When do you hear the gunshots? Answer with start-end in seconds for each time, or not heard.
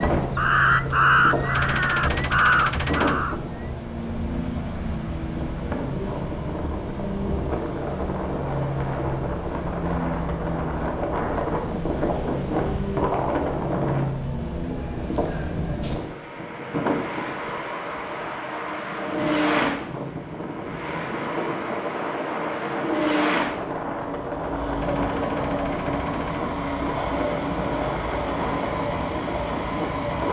1.5-3.2, 24.8-26.4.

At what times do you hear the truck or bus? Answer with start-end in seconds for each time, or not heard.
0.0-30.2.